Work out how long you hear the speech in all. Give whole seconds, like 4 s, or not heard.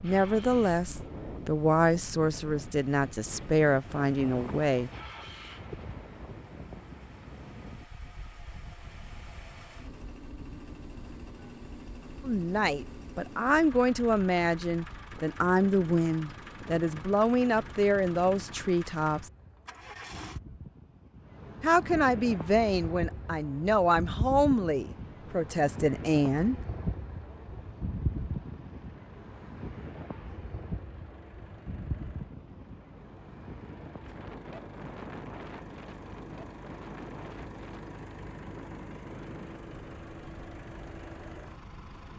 17 s.